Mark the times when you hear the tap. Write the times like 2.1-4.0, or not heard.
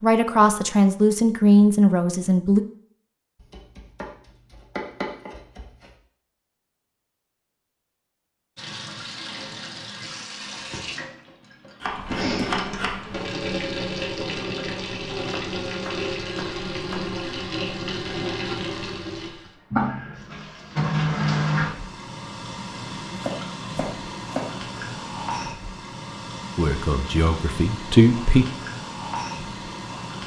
8.6-30.2.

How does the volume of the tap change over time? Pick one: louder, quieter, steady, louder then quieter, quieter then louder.
louder then quieter.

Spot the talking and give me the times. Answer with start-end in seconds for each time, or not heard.
0.0-2.6, 26.6-28.4.